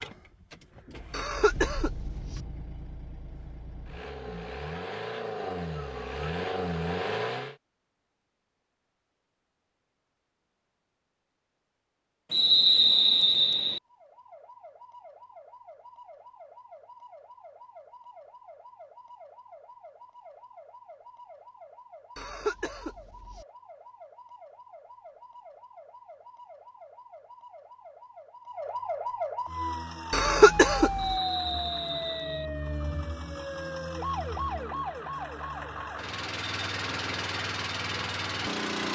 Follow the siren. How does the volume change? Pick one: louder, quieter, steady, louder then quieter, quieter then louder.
louder.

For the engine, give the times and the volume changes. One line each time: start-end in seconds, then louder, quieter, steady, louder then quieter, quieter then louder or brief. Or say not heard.
0.0-7.5 louder
29.4-38.8 louder.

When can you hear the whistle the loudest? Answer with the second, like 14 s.
13 s.